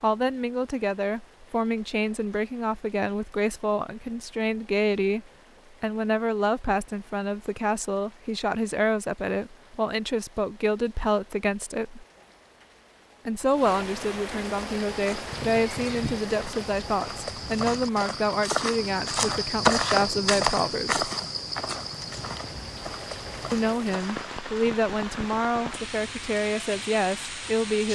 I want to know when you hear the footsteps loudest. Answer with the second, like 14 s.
20 s.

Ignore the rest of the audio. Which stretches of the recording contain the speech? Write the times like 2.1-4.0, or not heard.
0.0-12.1, 13.2-21.1, 23.5-27.8.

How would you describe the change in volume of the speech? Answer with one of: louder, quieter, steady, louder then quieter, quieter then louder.
steady.